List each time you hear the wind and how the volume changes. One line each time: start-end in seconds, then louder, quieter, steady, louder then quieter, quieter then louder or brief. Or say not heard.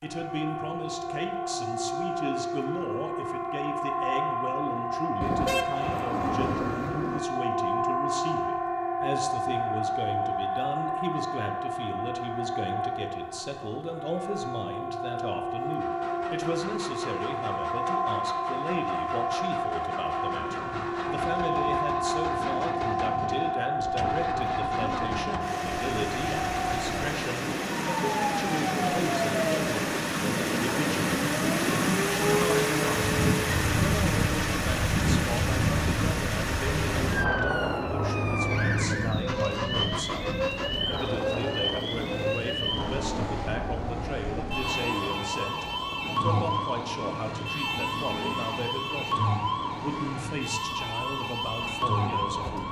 20.2-52.4 louder then quieter.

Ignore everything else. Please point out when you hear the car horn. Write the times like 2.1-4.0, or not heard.
5.2-7.2.